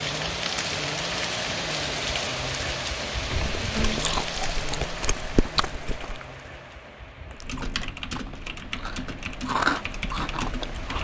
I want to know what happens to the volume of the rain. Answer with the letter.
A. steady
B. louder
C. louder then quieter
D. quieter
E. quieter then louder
D.